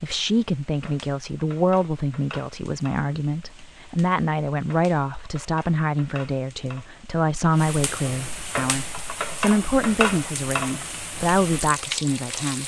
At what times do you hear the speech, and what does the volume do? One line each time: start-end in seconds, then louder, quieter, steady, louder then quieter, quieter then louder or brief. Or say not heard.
0.0-12.6 steady.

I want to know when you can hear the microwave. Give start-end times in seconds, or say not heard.
not heard.